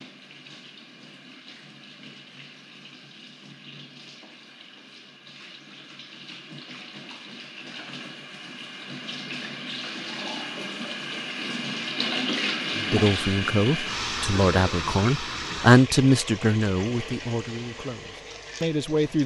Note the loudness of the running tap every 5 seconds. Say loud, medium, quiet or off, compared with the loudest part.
quiet, medium, loud, medium.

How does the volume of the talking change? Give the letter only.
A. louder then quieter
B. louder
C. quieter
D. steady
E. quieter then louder
A.